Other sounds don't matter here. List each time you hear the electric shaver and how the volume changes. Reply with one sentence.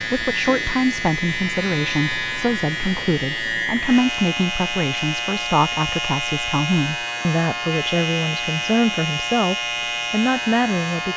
The electric shaver can be heard from 0.0 to 11.1 s, at a steady volume.